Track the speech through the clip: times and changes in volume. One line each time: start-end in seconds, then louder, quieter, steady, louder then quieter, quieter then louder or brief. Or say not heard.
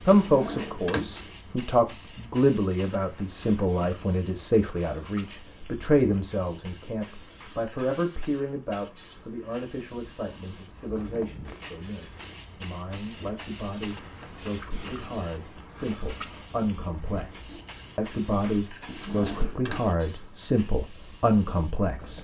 0.1-22.1 quieter then louder.